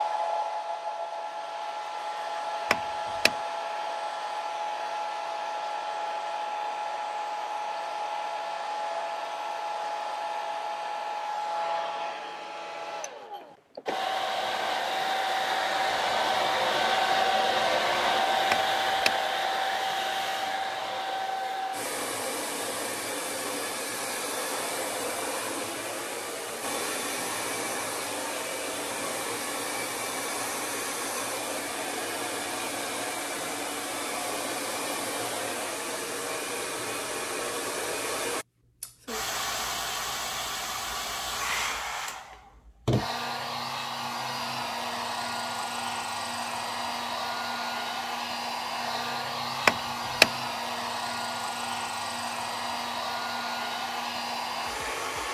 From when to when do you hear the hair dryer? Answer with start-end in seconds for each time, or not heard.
0.0-55.2.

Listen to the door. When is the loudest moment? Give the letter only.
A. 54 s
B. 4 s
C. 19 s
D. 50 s
D.